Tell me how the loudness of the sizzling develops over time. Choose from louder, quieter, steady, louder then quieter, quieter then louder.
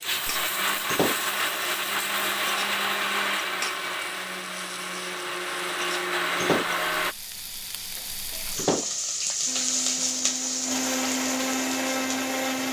louder.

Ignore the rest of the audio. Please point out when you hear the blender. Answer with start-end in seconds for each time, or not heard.
0.0-7.2, 9.4-12.6.